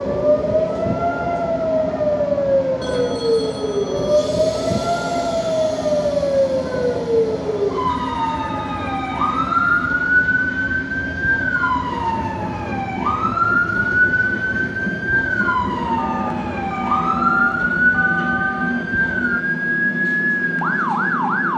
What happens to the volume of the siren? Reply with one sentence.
The volume of the siren stays about the same.